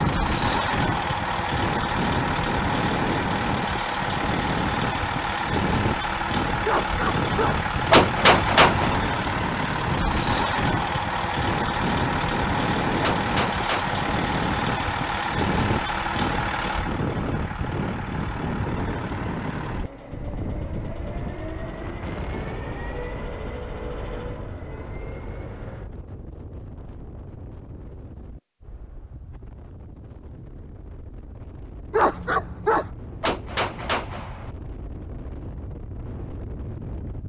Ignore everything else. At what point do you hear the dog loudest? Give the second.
32 s.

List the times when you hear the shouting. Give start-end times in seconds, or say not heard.
not heard.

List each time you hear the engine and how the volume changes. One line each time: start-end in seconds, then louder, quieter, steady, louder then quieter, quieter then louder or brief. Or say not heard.
0.0-25.9 quieter.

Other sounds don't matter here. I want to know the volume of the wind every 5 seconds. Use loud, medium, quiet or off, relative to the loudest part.
loud, loud, loud, loud, medium, quiet, quiet, medium.